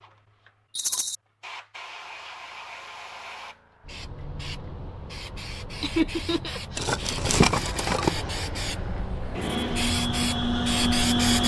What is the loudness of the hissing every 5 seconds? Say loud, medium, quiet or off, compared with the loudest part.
quiet, medium, loud.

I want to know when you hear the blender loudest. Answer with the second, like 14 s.
11 s.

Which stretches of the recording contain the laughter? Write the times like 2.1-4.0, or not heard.
5.8-6.9.